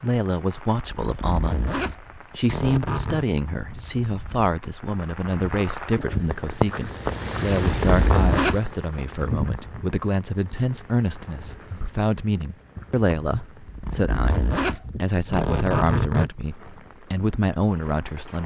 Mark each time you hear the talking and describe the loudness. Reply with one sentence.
You can hear the talking from 0.0 to 18.4 s, at a steady volume.